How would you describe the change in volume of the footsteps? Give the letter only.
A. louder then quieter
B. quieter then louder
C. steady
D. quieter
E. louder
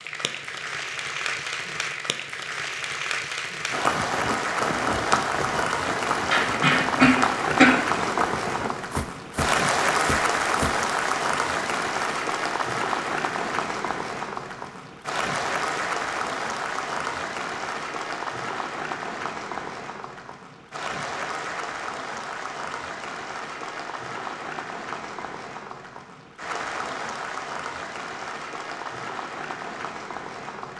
D.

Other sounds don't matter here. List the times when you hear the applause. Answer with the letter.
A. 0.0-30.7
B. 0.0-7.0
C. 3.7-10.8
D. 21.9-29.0
A.